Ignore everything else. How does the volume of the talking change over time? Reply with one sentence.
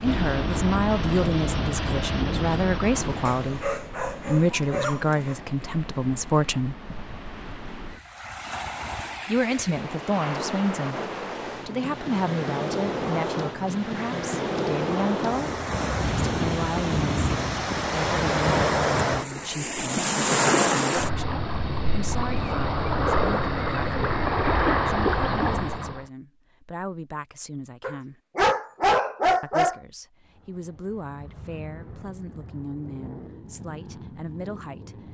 The loudness of the talking goes down.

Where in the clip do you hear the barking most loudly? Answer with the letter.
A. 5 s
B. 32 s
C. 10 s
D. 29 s
D.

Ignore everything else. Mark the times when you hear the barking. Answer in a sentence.
The barking can be heard from 3.2 to 5.3 s and from 27.8 to 29.8 s.